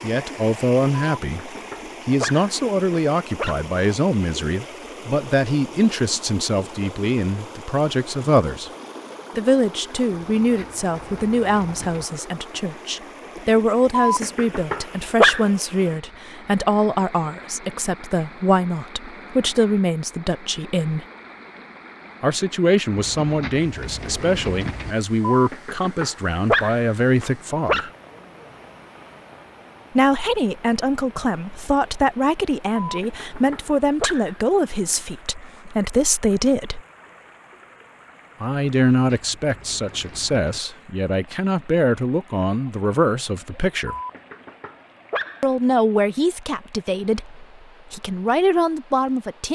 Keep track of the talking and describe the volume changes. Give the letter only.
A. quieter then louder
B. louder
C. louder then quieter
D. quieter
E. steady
E.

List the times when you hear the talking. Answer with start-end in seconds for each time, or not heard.
0.0-8.7, 9.3-21.1, 22.2-27.9, 29.9-36.8, 38.4-44.0, 45.4-49.4.